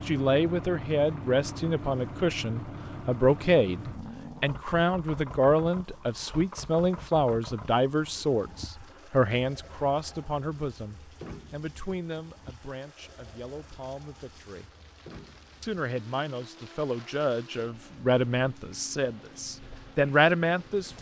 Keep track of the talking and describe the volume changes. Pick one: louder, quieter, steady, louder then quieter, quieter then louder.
quieter then louder.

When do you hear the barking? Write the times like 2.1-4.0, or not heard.
not heard.